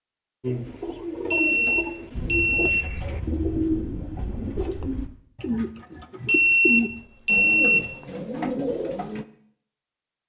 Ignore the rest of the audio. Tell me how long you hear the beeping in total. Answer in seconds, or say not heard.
3 s.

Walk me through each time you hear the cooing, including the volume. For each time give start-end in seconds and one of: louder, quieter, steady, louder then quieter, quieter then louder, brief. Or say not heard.
0.4-9.2 steady.